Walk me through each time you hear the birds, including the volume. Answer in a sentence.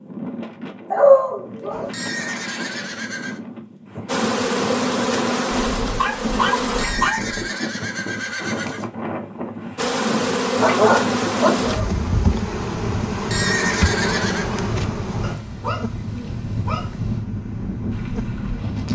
You can't hear the birds here.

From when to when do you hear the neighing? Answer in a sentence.
You can hear the neighing from 1.7 to 3.4 s, from 6.7 to 8.9 s and from 13.1 to 14.4 s.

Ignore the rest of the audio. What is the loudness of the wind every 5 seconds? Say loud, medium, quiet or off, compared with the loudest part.
medium, loud, loud, loud.